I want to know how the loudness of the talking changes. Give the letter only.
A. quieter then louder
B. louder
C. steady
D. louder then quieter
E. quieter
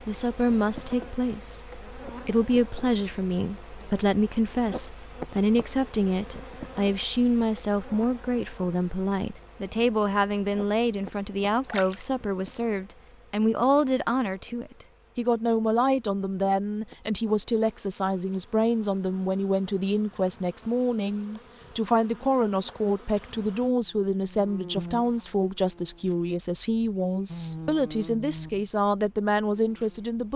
C.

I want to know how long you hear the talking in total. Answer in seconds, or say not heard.
30 s.